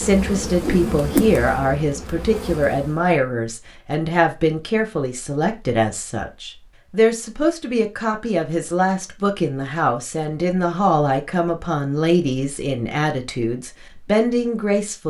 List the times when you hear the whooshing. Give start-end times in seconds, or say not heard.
0.3-1.4.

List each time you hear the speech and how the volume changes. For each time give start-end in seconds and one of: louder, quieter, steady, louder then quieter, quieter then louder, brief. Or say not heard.
0.0-15.0 steady.